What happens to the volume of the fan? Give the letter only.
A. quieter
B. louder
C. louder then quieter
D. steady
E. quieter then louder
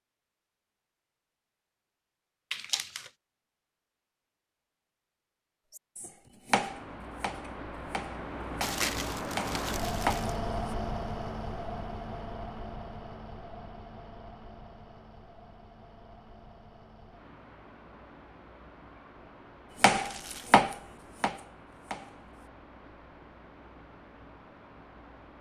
A.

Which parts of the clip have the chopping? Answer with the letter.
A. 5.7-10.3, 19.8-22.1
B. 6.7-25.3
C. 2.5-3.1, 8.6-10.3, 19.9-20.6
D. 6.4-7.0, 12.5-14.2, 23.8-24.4
A.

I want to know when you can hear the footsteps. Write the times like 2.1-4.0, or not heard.
not heard.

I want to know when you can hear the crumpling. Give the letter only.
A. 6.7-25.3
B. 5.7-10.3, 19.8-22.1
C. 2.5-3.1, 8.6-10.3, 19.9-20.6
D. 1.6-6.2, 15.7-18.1
C.